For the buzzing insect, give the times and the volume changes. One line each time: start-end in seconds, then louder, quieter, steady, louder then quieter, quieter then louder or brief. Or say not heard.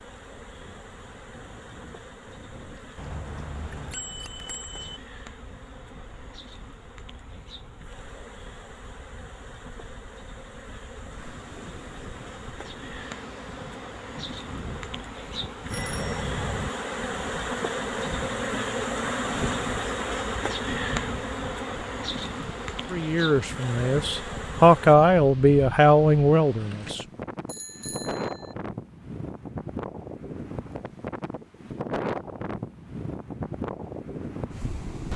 0.0-24.9 louder.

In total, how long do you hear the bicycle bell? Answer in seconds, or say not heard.
4 s.